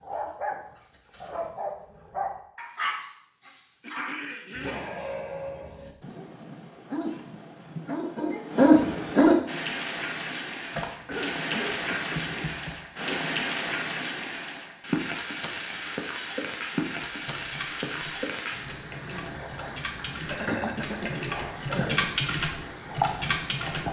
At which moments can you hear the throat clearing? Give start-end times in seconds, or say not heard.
3.8-5.0, 11.1-13.2, 20.3-22.2.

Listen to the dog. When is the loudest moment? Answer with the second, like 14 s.
9 s.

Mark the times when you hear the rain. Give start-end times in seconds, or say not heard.
9.4-23.8.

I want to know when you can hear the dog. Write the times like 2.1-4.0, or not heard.
0.0-9.3.